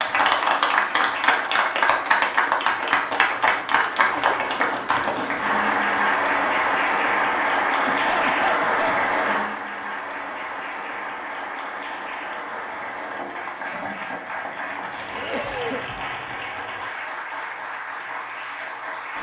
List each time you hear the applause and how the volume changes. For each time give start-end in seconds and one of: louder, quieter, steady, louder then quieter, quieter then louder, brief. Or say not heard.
0.0-19.1 quieter.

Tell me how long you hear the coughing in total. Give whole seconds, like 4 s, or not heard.
3 s.